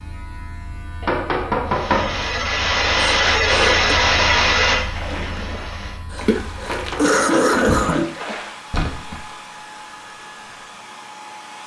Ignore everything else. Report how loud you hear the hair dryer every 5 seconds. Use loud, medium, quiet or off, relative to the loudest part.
loud, quiet, quiet.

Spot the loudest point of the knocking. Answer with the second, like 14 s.
2 s.